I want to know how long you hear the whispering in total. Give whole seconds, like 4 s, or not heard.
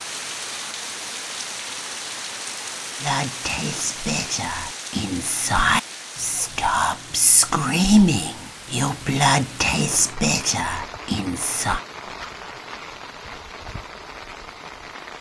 9 s.